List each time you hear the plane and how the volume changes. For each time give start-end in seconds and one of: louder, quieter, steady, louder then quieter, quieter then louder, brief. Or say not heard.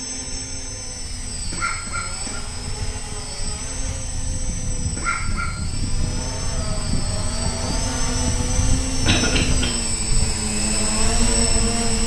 0.0-12.0 louder.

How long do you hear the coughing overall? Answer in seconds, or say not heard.
2 s.